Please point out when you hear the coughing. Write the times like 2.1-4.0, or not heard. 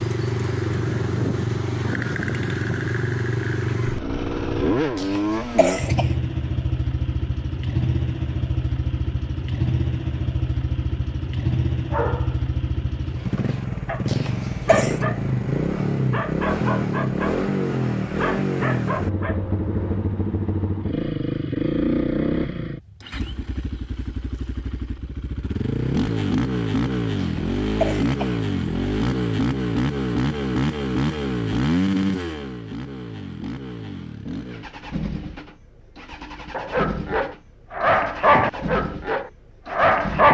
5.0-6.1, 14.1-15.0, 27.1-28.4.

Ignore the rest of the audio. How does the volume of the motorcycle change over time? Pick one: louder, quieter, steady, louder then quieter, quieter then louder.
quieter.